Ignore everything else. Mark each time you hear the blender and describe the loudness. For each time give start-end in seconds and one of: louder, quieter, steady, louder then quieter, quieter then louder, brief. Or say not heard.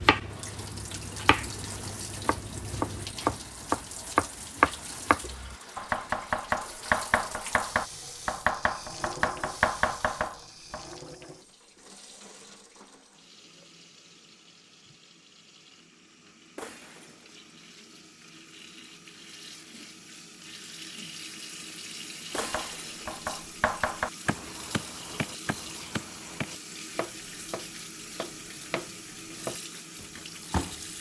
not heard.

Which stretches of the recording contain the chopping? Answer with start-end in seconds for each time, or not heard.
0.0-10.9, 22.4-30.9.